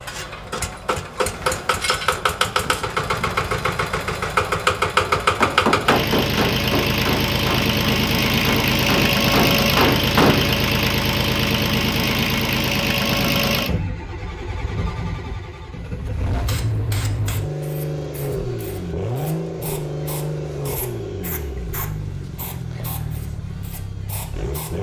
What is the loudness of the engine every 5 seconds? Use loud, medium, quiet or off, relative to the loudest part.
loud, loud, loud, medium, medium.